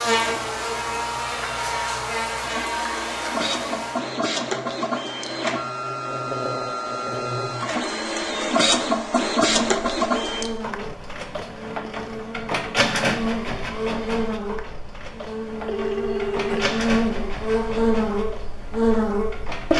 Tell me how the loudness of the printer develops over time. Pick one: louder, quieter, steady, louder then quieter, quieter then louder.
louder then quieter.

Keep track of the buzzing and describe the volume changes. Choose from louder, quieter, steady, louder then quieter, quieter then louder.
quieter then louder.